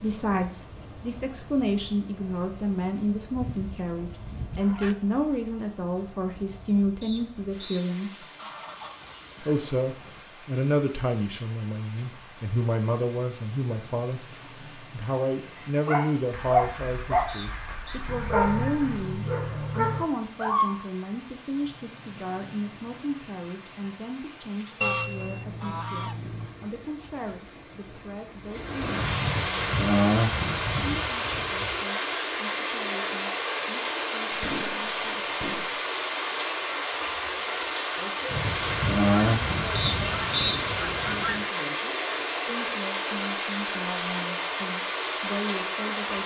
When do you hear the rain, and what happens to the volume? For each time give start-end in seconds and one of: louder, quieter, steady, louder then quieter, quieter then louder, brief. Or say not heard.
0.0-46.2 louder.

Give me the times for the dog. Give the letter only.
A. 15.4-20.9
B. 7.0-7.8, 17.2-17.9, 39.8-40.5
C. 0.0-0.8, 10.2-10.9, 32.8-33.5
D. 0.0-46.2
A.